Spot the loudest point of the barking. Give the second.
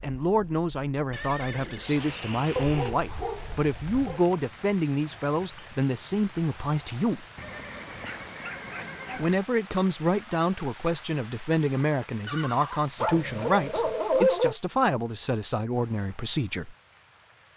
14 s.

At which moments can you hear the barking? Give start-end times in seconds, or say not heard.
2.5-4.2, 8.0-9.3, 13.0-14.6.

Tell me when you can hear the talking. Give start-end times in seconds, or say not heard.
0.0-7.2, 9.2-16.8.